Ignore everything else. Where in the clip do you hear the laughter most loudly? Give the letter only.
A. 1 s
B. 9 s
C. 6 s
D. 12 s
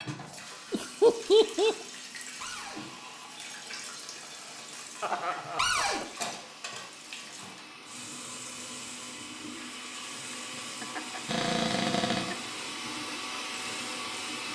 A.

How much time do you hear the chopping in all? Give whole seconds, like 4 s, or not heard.
not heard.